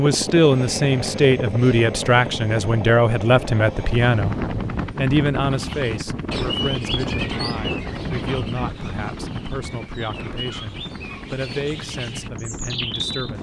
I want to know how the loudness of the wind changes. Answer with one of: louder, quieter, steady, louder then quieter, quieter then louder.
quieter.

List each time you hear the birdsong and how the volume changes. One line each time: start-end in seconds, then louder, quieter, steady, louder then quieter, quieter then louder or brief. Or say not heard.
5.5-13.3 quieter then louder.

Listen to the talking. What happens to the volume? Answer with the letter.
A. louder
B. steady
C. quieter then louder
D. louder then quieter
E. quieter
E.